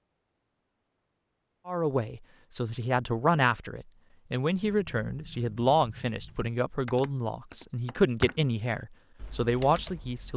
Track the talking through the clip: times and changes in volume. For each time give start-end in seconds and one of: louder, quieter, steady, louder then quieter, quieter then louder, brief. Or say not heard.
1.6-10.3 steady.